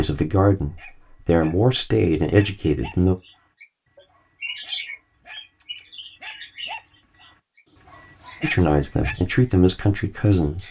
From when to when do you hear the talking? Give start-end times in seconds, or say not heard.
0.0-3.1, 8.4-10.6.